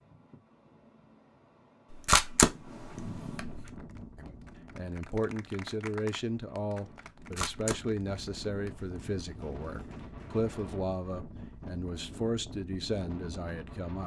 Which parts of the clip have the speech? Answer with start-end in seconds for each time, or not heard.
4.2-14.0.